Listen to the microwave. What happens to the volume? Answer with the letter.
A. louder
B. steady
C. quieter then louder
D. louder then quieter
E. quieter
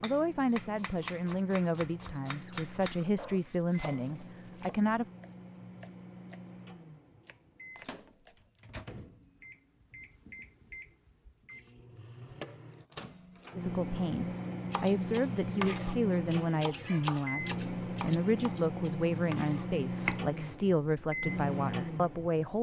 A.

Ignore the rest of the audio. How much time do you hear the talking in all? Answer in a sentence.
You can hear the talking for 14 seconds altogether.